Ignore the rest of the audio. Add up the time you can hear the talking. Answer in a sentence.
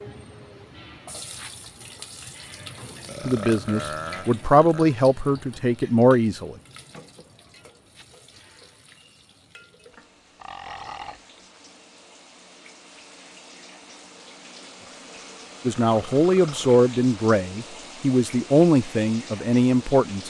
The talking can be heard for 8 seconds in total.